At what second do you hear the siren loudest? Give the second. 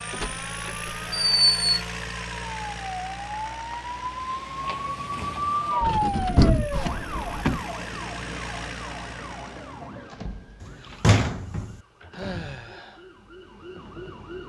6 s.